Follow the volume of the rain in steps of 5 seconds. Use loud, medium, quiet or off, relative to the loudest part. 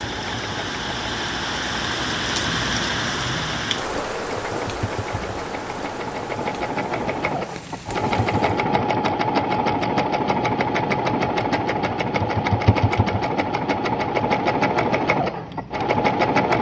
loud, medium, off, off.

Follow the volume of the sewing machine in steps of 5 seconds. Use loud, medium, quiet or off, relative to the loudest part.
quiet, loud, loud, loud.